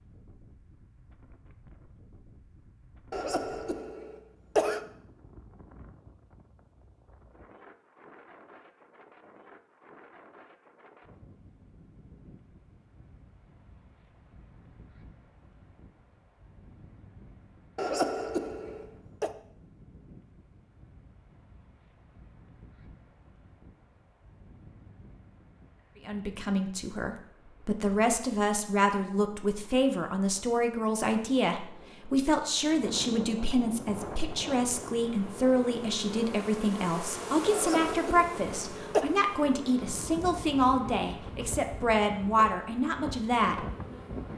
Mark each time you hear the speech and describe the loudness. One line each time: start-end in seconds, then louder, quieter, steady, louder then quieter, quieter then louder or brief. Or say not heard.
26.1-43.6 steady.